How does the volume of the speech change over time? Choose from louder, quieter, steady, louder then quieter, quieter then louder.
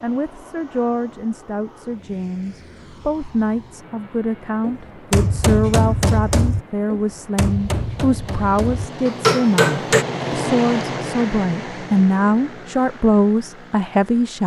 louder.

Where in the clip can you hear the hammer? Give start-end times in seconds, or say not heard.
4.6-10.1.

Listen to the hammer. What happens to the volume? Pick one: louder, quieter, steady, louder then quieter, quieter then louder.
quieter then louder.